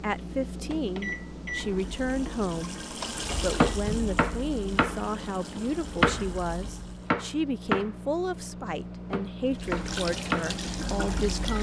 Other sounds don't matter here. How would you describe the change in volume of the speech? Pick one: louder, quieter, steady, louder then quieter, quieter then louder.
steady.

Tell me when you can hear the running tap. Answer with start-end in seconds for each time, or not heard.
1.5-7.1, 9.4-11.5.